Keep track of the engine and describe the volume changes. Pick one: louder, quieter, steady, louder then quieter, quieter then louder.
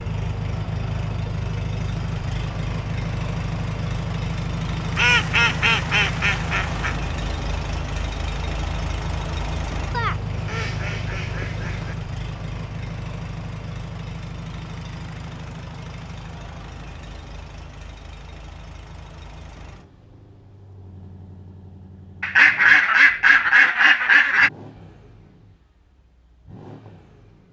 quieter.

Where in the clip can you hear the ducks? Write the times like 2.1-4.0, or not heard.
5.0-7.0, 9.9-11.9, 22.2-24.5.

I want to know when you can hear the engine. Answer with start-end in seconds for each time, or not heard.
0.0-27.4.